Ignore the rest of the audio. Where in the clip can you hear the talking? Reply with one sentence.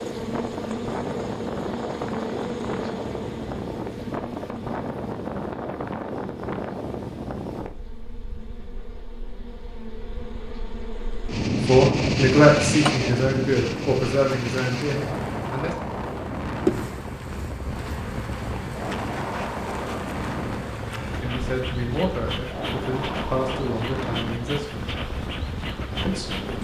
You can hear the talking from 11.7 to 15.8 s, from 21.2 to 24.9 s and from 26.1 to 26.6 s.